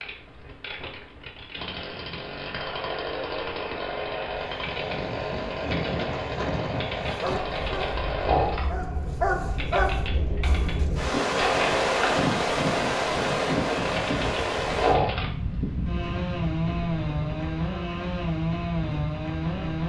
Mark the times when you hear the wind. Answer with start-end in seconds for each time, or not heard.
4.3-19.6.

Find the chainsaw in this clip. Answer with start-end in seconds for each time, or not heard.
0.0-19.8.